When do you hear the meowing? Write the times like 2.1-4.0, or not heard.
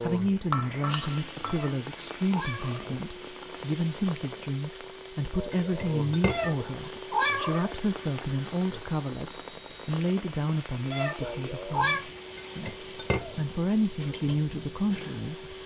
1.4-3.0, 6.2-7.8, 10.9-12.1.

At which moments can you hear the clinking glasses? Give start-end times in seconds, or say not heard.
0.5-1.7, 5.5-7.0, 12.3-13.6.